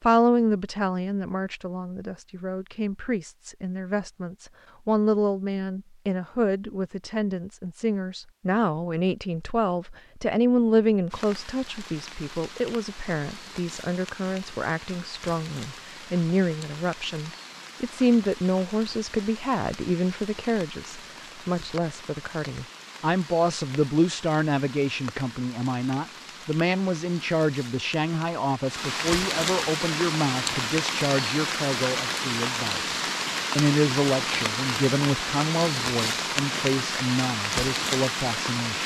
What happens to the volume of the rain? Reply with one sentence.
The volume of the rain goes up.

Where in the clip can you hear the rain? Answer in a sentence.
The rain can be heard from 11.1 to 38.8 s.